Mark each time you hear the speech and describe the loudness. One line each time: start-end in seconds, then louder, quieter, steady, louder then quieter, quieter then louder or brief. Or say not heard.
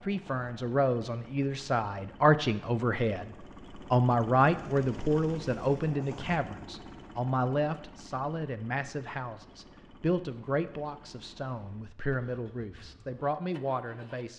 0.0-14.3 quieter.